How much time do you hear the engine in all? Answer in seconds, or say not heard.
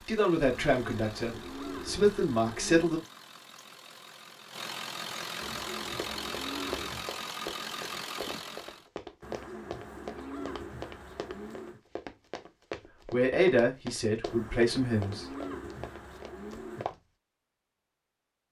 9 s.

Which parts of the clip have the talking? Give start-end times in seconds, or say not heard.
0.0-3.0, 13.1-15.2.